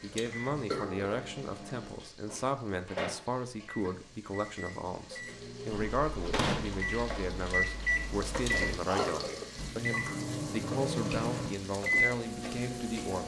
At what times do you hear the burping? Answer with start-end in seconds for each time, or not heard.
0.1-1.1, 8.4-9.4.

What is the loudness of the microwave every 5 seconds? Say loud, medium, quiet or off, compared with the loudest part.
medium, loud, loud.